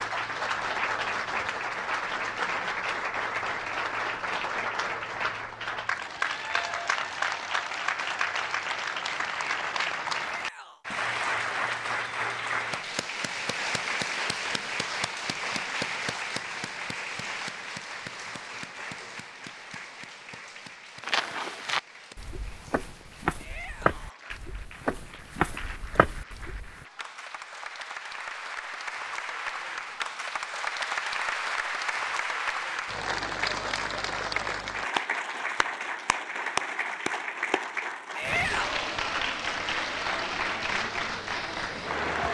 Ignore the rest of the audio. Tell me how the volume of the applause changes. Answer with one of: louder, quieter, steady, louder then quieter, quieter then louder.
quieter then louder.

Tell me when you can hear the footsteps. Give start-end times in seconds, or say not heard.
21.0-26.9.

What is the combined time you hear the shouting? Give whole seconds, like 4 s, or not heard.
2 s.